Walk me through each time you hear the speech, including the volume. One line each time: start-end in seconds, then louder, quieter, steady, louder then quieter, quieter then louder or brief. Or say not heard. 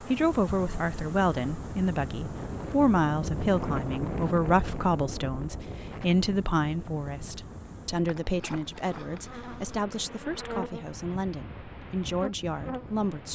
0.1-13.3 quieter.